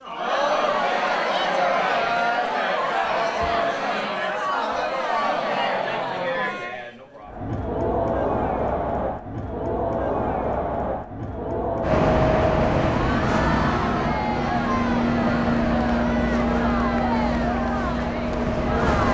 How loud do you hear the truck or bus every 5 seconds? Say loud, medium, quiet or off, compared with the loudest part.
off, off, loud, loud.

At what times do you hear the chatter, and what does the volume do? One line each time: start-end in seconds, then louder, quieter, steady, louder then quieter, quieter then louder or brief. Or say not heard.
0.0-19.1 quieter.